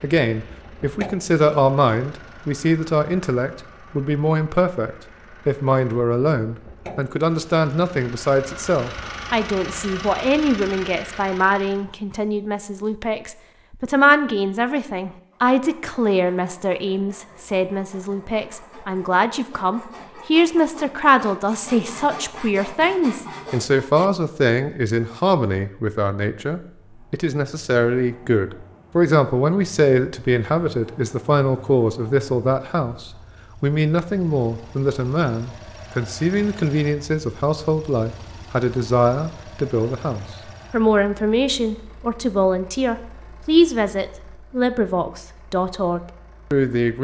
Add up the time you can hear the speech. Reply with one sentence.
You can hear the speech for 47 seconds altogether.